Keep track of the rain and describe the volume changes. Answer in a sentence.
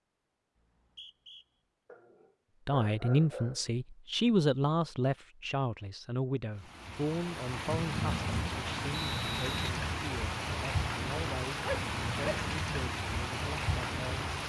The volume of the rain stays about the same.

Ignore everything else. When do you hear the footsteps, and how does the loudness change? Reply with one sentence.
You can't hear the footsteps here.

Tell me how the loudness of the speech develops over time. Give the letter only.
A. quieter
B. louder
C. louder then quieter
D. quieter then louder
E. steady
A.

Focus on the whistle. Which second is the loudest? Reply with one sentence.
The loudest moment of the whistle is at 9 seconds.